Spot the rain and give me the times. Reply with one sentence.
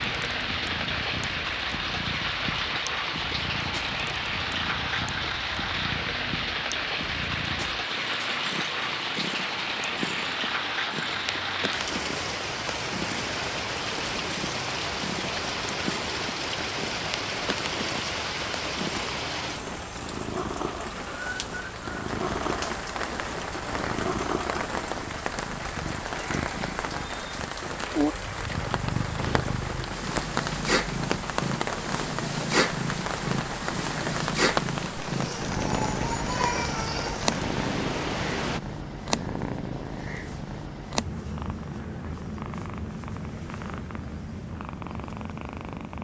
The rain can be heard from 0.0 to 38.6 s.